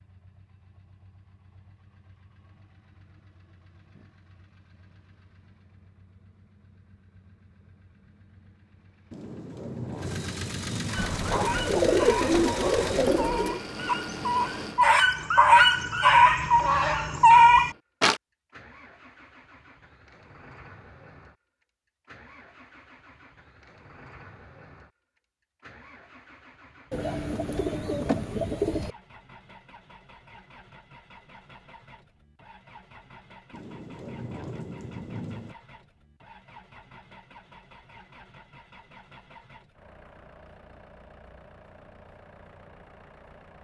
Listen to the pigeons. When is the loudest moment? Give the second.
12 s.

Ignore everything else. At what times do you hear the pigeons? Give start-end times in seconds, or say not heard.
10.9-13.6, 26.9-28.9.